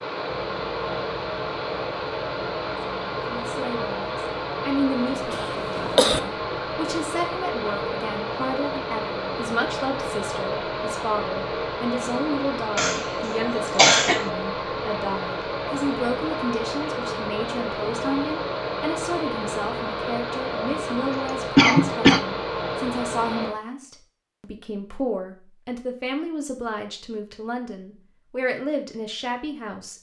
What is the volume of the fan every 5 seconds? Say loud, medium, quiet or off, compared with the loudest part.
loud, loud, loud, loud, loud, off.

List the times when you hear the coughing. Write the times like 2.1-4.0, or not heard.
5.3-6.2, 12.8-14.2, 21.1-22.2.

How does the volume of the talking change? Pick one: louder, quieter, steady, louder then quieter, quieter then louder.
steady.